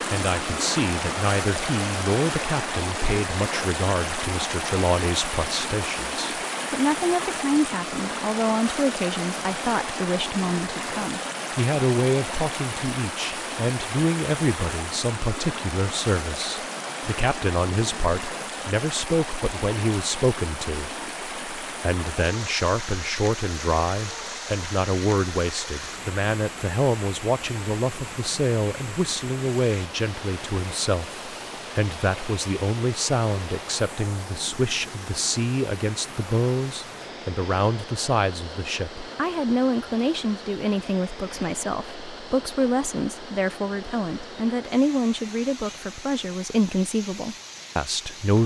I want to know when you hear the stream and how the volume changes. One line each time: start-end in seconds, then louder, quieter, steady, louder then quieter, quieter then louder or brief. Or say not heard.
0.0-48.4 quieter.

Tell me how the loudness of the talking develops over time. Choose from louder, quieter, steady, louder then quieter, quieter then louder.
steady.